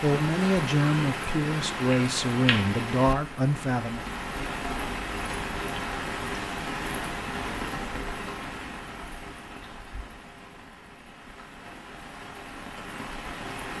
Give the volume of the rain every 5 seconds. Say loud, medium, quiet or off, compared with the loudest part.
loud, loud, medium.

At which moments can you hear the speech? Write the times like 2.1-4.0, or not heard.
0.0-4.0.